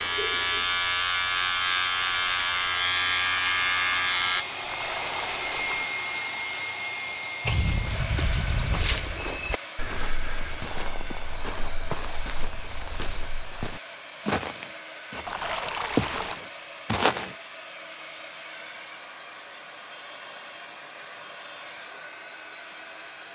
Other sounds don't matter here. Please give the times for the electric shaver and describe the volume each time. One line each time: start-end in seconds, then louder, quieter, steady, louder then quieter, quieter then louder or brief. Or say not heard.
0.0-4.5 steady.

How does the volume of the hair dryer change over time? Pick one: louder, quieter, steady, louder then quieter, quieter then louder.
quieter.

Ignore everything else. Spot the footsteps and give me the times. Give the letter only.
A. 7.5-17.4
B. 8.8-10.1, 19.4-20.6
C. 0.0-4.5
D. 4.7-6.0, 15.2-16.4
A.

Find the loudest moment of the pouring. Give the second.
16 s.